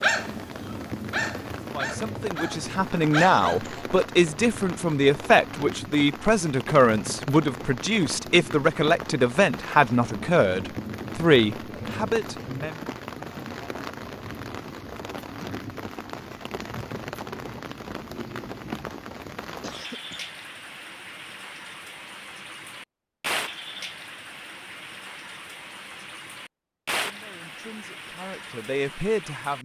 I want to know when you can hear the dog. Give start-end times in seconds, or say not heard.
0.0-3.8.